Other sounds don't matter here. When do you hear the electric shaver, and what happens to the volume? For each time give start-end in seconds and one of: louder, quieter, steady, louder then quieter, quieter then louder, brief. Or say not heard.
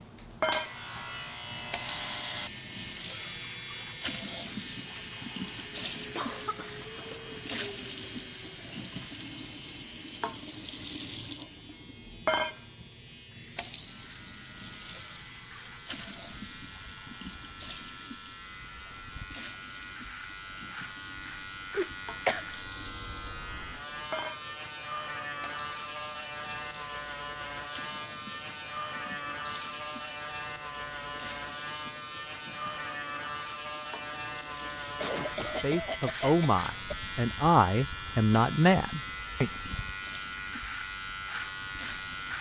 0.0-42.3 quieter then louder.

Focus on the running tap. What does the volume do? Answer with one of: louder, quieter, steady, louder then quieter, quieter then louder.
quieter.